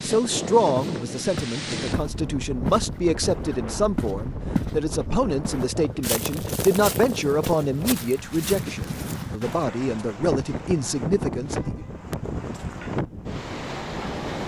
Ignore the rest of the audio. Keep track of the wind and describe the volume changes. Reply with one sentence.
The volume of the wind stays about the same.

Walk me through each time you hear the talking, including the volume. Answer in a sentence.
You can hear the talking from 0.0 to 11.8 s, at a steady volume.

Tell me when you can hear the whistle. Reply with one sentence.
The whistle can't be heard in this clip.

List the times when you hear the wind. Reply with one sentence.
You can hear the wind from 0.0 to 14.4 s.